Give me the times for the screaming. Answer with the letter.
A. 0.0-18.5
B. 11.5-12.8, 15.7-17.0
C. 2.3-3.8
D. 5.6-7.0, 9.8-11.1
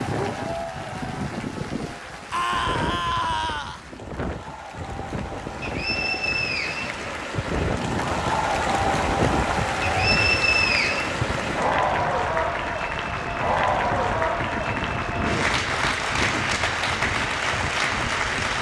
C.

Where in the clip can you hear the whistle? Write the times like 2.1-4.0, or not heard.
5.6-7.0, 9.8-11.1.